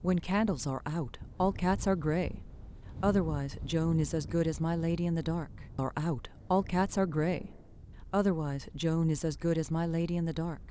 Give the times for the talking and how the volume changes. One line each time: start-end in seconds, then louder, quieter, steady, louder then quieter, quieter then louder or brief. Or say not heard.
0.0-10.6 steady.